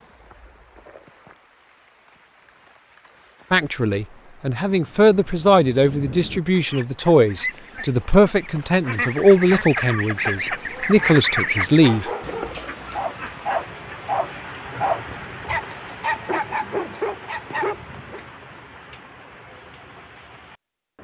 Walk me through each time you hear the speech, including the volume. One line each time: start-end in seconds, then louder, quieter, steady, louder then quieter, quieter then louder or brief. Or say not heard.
3.5-12.1 steady.